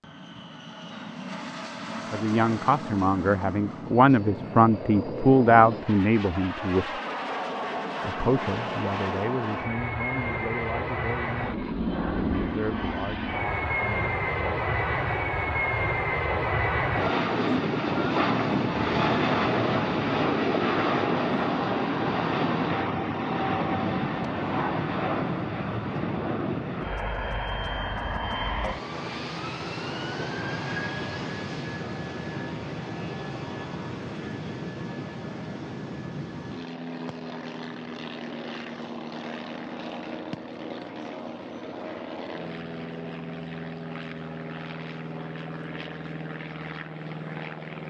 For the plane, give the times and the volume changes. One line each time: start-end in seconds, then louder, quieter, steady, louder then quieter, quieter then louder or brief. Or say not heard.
0.0-47.8 louder then quieter.